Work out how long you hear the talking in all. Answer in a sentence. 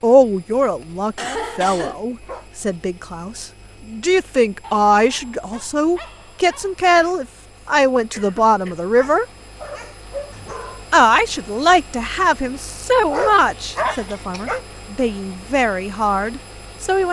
You can hear the talking for 15 seconds altogether.